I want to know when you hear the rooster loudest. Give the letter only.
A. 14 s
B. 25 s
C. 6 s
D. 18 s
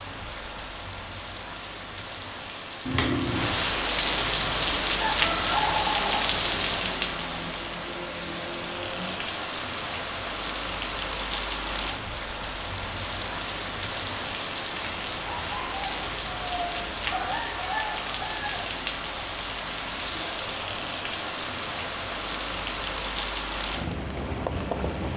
C.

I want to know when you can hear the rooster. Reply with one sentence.
You can hear the rooster from 5.0 to 6.2 s and from 15.2 to 18.6 s.